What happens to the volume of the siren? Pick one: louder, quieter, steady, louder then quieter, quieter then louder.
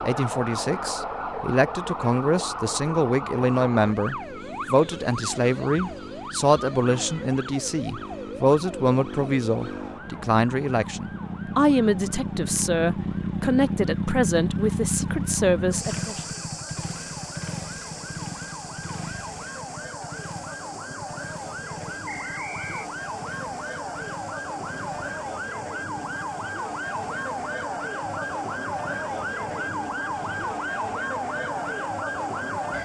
quieter then louder.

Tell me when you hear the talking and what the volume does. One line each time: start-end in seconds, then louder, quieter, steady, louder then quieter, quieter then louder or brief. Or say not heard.
0.0-16.2 steady.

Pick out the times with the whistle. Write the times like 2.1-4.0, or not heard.
22.1-22.9.